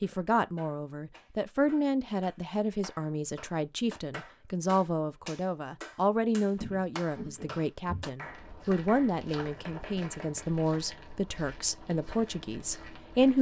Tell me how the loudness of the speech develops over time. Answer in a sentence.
The volume of the speech stays about the same.